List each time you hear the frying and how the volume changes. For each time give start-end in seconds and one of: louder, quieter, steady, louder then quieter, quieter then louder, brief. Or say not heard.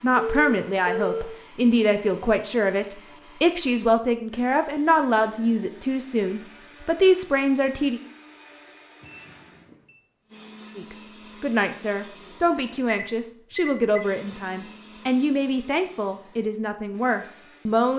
not heard.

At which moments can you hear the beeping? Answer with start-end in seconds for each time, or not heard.
0.1-1.3, 9.0-9.9, 12.8-14.1.